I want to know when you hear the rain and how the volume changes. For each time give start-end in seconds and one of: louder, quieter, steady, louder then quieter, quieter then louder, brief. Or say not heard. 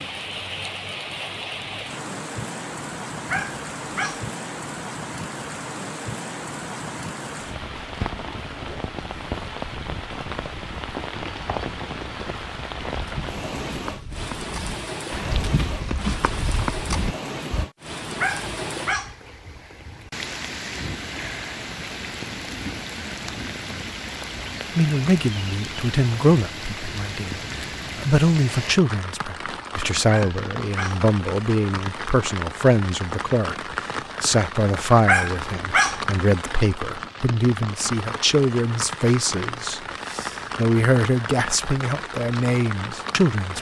0.0-43.5 steady.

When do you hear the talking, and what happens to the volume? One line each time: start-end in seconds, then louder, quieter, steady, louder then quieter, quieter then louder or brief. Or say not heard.
24.8-43.5 steady.